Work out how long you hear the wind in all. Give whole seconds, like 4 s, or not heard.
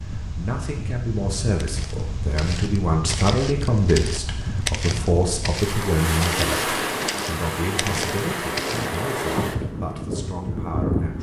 11 s.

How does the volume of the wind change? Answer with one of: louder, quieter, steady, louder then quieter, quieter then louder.
louder.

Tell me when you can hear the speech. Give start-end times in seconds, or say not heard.
0.2-11.1.